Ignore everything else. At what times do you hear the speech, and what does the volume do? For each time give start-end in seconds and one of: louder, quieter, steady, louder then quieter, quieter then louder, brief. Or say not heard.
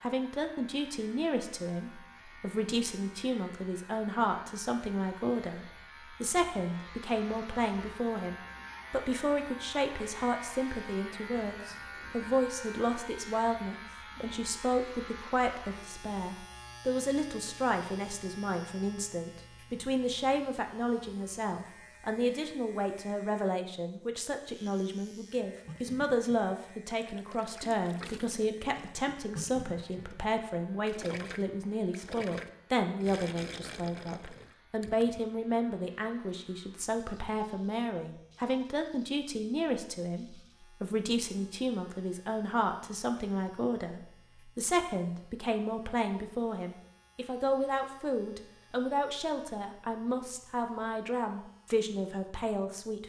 0.0-53.0 steady.